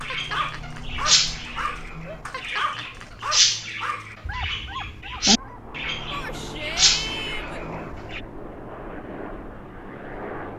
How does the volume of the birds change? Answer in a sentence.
The loudness of the birds goes down, then up.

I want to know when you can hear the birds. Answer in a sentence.
You can hear the birds from 0.0 to 8.2 s.